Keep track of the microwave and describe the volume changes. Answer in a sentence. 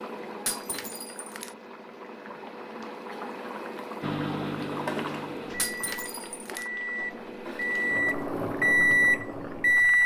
The loudness of the microwave goes up.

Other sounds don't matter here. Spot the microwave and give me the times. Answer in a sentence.
You can hear the microwave from 4.0 to 10.0 s.